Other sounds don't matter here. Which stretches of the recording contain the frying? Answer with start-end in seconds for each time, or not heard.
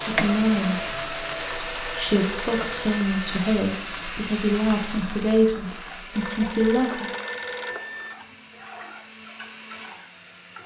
0.0-10.6.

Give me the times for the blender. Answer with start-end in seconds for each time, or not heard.
0.0-10.6.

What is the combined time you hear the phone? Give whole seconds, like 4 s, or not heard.
4 s.